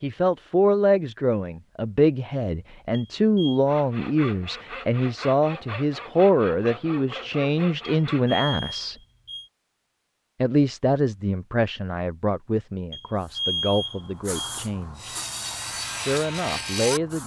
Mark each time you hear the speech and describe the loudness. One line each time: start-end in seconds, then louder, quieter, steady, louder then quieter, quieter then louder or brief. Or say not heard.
0.0-8.9 steady
10.4-15.2 quieter
15.9-17.2 brief.